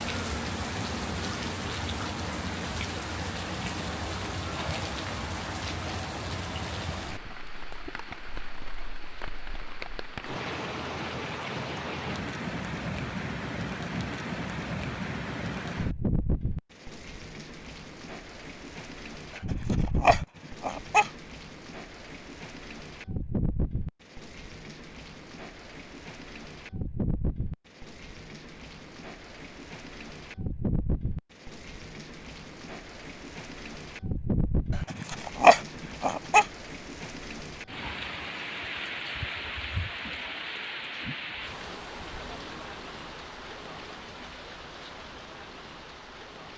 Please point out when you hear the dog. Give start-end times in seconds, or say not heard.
19.5-21.1, 34.9-36.5.